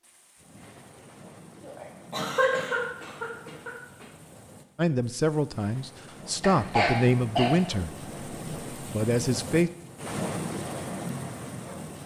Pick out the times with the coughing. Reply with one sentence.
You can hear the coughing from 1.6 to 4.0 s and from 6.4 to 7.6 s.